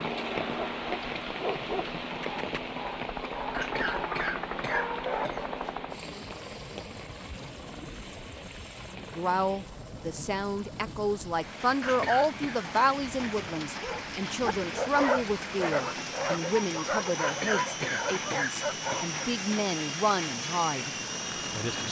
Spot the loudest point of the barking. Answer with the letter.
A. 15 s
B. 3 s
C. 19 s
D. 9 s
A.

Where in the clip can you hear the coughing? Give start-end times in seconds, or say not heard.
3.5-5.5, 11.8-12.6, 17.2-19.1.